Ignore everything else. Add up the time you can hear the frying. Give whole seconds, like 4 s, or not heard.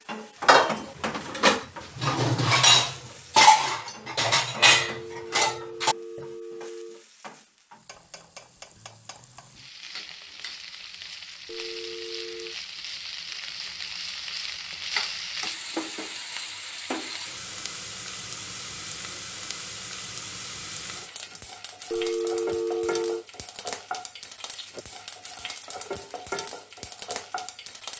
28 s.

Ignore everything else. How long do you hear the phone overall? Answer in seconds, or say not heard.
5 s.